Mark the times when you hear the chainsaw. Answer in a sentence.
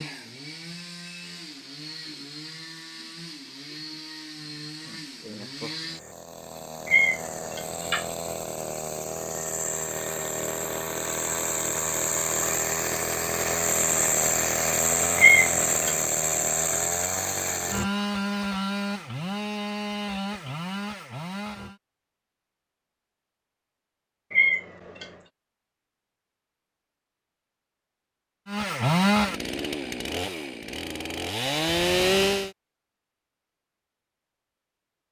The chainsaw can be heard from 0.0 to 21.8 s and from 28.4 to 32.5 s.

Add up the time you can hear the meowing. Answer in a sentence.
You can hear the meowing for 3 seconds altogether.